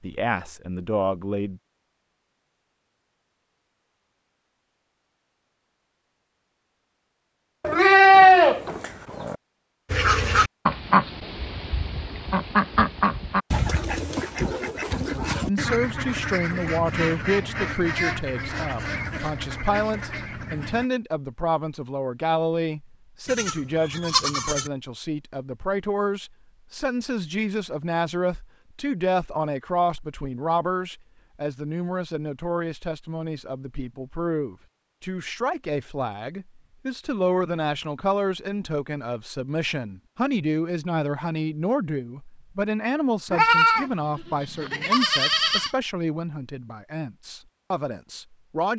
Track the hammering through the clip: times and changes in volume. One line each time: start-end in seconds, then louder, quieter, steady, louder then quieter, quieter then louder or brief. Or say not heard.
not heard.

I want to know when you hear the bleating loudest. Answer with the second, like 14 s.
8 s.